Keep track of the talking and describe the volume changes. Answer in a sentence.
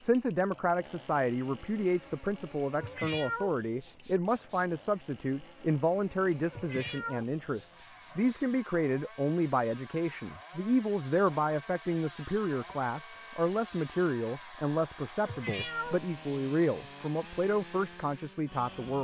The loudness of the talking stays about the same.